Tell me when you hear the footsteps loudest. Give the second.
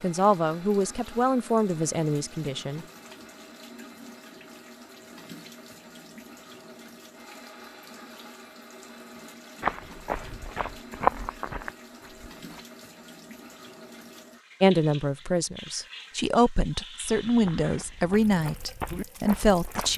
11 s.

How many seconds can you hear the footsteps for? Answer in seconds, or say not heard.
6 s.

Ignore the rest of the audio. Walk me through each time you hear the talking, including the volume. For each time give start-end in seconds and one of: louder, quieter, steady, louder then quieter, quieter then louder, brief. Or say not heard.
0.0-2.9 brief
14.6-19.9 louder.